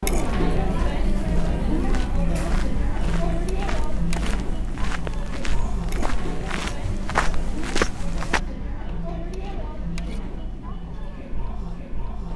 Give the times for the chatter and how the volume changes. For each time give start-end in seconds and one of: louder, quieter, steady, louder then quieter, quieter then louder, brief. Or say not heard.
0.0-12.3 quieter.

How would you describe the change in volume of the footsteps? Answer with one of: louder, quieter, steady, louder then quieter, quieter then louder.
louder.